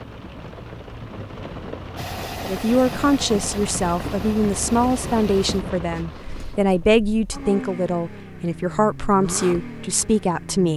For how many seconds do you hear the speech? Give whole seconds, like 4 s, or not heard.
8 s.